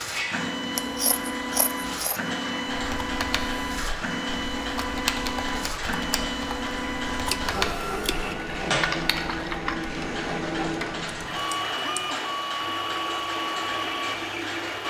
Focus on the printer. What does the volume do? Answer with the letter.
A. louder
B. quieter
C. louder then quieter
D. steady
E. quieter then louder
D.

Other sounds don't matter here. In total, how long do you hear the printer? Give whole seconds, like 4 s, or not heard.
15 s.